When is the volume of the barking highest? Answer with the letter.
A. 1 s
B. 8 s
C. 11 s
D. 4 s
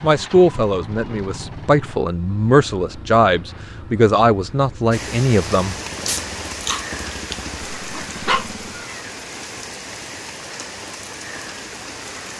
B.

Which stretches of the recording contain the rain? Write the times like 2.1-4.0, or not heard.
4.9-12.3.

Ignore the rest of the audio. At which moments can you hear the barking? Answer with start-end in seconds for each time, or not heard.
6.0-8.5.